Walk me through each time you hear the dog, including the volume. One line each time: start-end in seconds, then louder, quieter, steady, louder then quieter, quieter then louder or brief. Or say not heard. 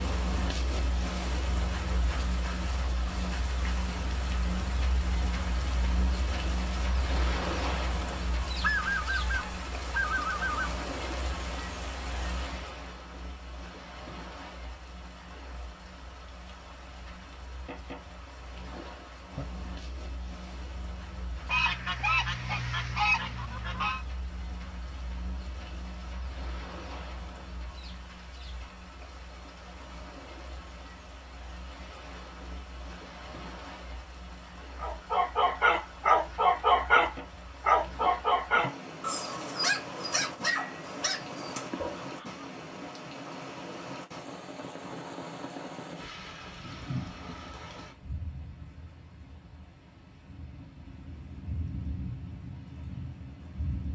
34.8-42.0 quieter.